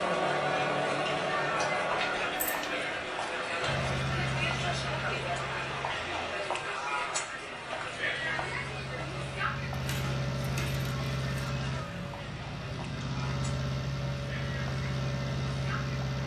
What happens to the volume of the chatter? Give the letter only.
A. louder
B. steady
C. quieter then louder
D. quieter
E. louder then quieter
D.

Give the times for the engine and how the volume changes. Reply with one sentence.
You can hear the engine from 3.6 to 16.2 s, getting quieter then louder.